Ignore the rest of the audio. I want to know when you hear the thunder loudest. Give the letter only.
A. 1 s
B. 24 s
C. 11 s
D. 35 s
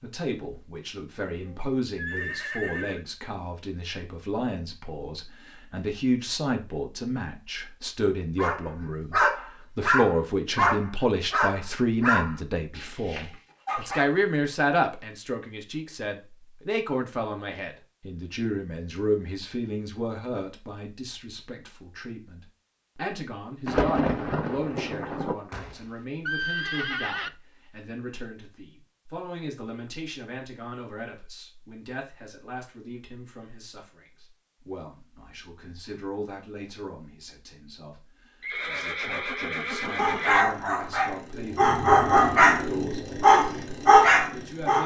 B.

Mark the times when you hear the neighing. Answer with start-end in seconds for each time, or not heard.
1.4-3.0, 25.5-27.3, 38.4-40.5.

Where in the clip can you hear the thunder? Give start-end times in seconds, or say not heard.
23.6-25.4.